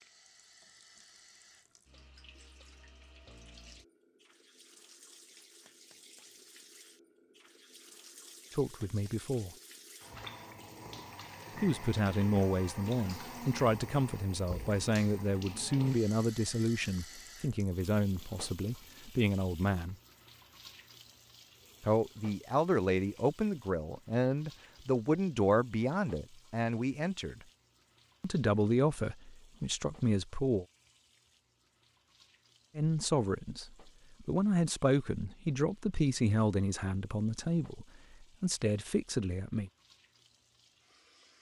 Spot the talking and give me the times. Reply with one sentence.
The talking can be heard from 8.6 to 9.6 s, from 11.6 to 19.9 s, from 21.8 to 27.4 s, from 28.2 to 30.6 s and from 32.8 to 39.7 s.